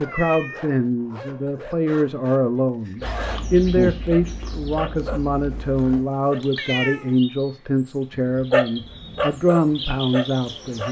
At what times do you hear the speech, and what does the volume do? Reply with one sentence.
The speech can be heard from 0.0 to 10.8 s, at a steady volume.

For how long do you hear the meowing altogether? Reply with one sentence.
The meowing can be heard for 2 seconds in total.